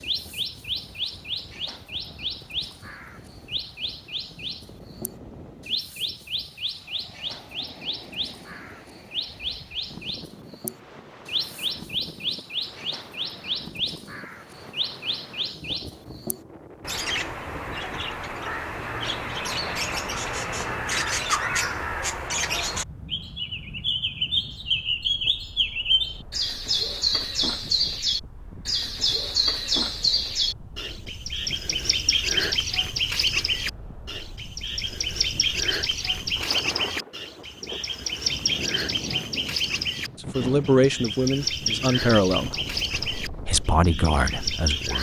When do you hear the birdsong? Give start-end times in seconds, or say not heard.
0.0-44.9.